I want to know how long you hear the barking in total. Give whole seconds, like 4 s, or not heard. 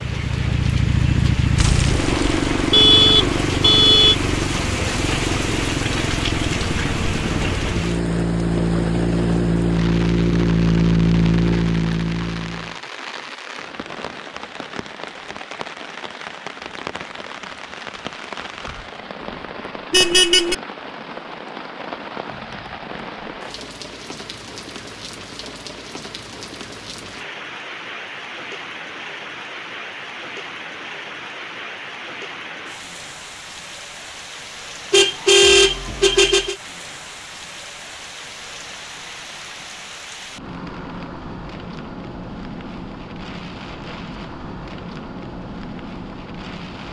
not heard.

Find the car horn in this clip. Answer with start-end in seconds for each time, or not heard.
1.6-4.2, 19.9-20.6, 34.9-36.5.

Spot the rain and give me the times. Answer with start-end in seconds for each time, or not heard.
0.0-46.8.